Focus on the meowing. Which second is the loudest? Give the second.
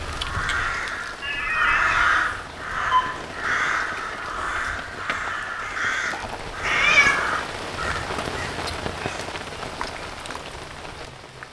7 s.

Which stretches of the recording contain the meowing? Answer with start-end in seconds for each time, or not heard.
1.2-1.9, 6.6-7.3.